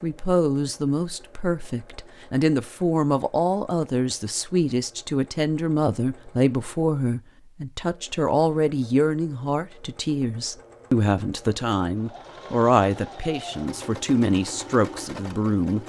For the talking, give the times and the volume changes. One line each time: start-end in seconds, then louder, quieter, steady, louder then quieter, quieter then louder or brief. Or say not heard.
0.0-15.8 steady.